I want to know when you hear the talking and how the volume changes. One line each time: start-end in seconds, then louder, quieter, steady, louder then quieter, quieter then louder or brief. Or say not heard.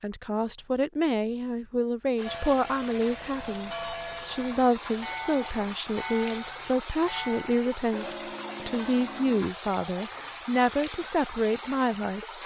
0.0-12.2 steady.